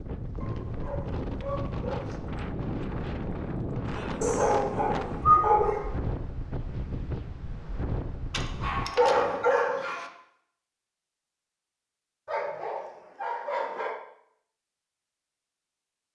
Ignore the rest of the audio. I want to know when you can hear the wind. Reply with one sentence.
You can hear the wind from 0.0 to 8.9 s.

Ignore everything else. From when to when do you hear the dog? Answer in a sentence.
You can hear the dog from 0.4 to 2.3 s, from 4.2 to 6.0 s, from 8.3 to 10.1 s and from 12.2 to 14.0 s.